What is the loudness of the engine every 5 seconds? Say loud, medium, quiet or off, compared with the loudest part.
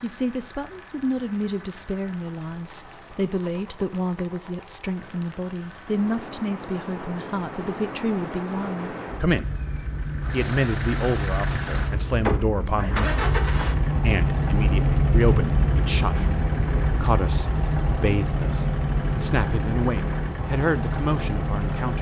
quiet, quiet, loud, loud, loud.